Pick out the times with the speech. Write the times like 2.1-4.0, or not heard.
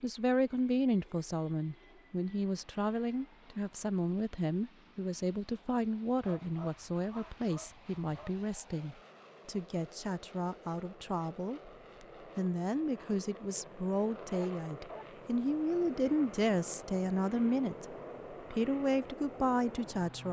0.0-20.2.